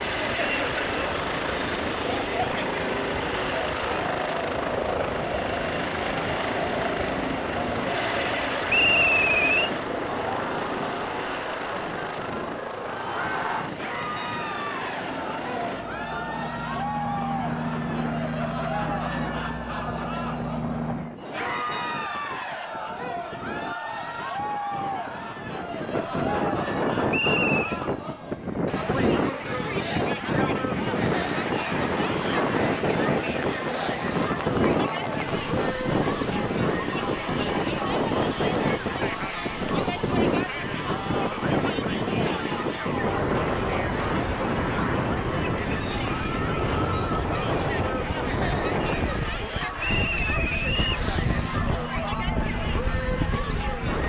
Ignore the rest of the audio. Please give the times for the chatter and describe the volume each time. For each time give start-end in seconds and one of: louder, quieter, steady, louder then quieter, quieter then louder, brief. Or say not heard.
0.2-54.0 steady.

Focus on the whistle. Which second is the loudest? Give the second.
9 s.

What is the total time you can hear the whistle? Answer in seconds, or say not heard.
3 s.